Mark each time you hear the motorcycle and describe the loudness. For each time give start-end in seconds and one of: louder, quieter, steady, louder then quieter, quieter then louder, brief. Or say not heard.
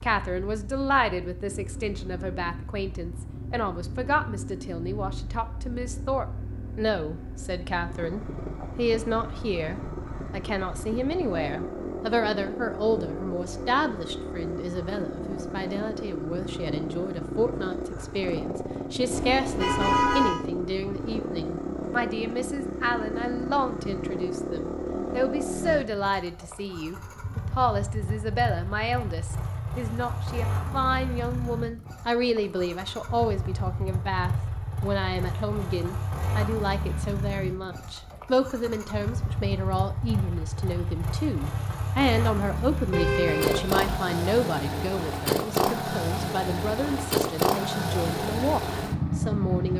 0.0-49.7 louder.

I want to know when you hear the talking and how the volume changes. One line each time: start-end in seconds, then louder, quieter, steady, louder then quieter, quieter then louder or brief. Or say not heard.
0.0-49.7 steady.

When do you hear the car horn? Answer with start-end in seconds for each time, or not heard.
19.1-20.4, 42.9-44.0.